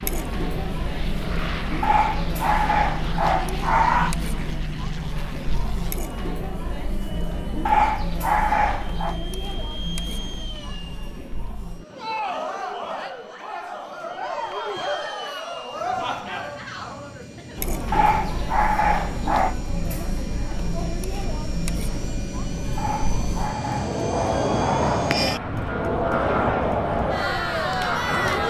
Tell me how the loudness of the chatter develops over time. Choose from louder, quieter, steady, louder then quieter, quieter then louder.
louder.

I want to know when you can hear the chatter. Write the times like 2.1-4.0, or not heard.
0.0-28.4.